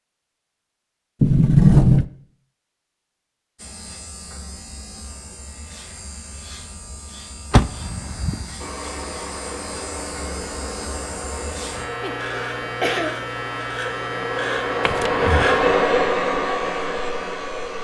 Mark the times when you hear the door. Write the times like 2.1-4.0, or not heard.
1.2-2.0, 7.5-8.4, 14.8-15.6.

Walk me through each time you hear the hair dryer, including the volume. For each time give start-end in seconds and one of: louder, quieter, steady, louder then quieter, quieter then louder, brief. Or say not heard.
8.6-17.7 louder.